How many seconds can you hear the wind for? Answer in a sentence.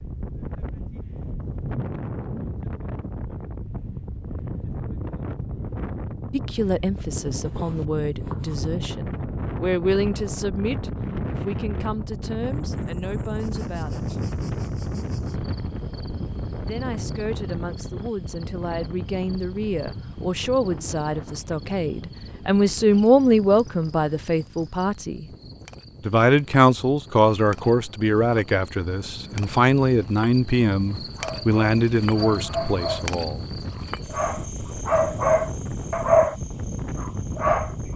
You can hear the wind for 38 seconds altogether.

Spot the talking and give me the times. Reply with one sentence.
The talking can be heard from 6.3 to 14.2 s, from 16.6 to 25.2 s and from 26.0 to 33.5 s.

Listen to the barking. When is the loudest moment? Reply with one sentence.
The loudest moment of the barking is at 36 seconds.